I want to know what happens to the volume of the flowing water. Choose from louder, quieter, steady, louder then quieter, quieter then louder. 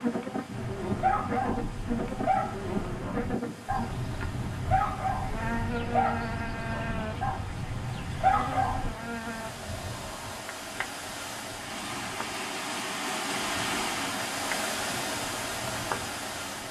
louder.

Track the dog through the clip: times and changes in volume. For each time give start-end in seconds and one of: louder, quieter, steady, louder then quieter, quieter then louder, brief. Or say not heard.
0.6-8.9 quieter then louder.